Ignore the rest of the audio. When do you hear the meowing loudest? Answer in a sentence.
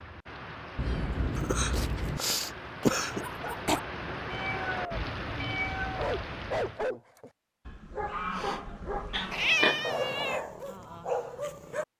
The volume of the meowing peaks at 10 seconds.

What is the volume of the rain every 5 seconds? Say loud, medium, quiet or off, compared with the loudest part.
loud, loud, off.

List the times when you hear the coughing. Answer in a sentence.
You can hear the coughing from 1.4 to 3.2 s and from 9.1 to 9.8 s.